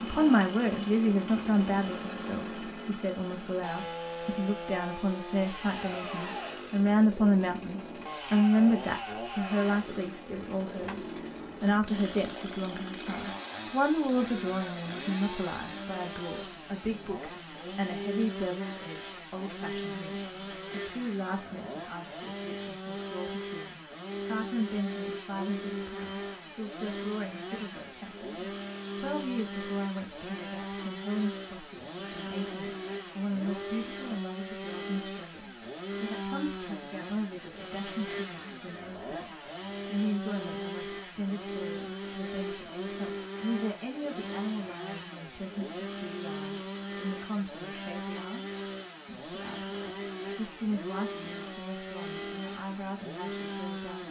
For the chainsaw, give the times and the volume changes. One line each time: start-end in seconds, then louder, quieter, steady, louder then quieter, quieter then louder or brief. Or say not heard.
0.0-54.0 steady.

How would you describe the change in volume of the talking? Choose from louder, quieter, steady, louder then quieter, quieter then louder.
quieter.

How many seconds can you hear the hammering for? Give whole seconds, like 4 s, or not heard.
not heard.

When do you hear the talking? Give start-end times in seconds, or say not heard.
0.0-54.0.